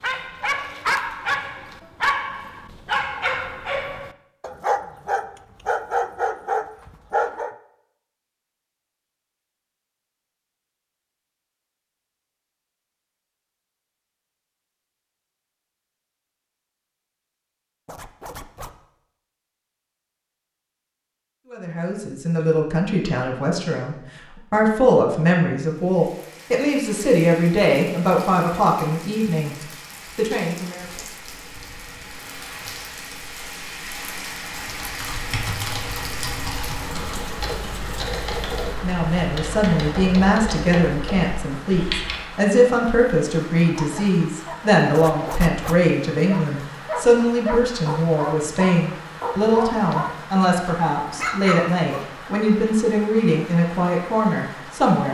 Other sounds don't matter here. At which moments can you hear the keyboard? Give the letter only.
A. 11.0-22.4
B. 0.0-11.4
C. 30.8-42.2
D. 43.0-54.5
C.